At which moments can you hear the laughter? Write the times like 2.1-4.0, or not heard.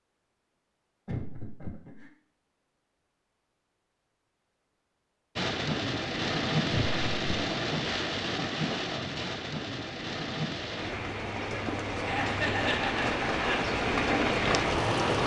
1.1-2.1, 6.7-7.5, 12.0-13.6.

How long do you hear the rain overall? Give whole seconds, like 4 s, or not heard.
10 s.